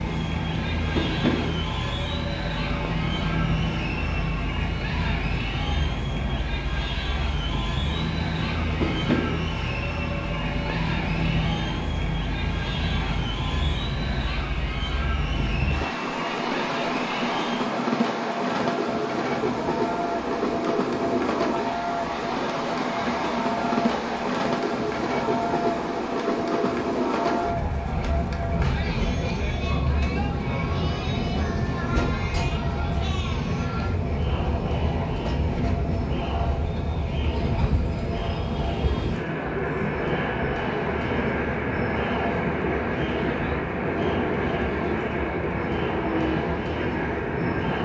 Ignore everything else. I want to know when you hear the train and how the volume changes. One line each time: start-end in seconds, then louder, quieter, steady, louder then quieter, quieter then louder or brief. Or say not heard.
0.0-47.7 steady.